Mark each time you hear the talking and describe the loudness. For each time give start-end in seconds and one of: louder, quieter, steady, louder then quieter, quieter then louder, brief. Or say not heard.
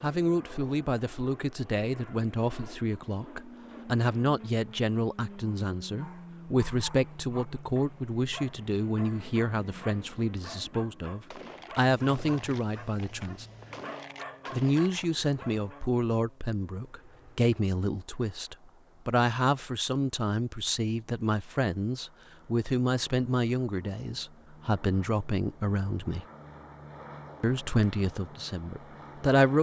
0.0-13.4 steady
14.5-26.2 steady
27.4-29.5 brief.